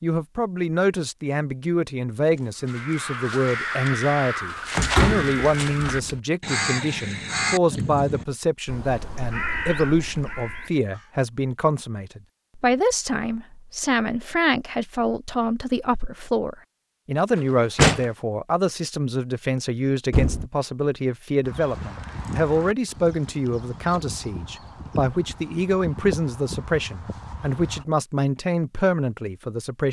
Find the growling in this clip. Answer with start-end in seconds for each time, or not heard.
not heard.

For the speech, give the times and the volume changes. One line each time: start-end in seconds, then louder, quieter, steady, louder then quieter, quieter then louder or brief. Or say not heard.
0.0-29.8 steady.